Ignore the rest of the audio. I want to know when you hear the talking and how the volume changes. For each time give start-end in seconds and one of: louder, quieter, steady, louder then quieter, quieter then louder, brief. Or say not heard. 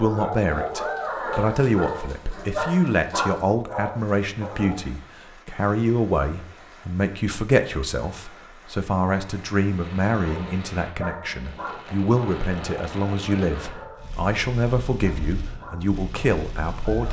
0.0-17.0 steady.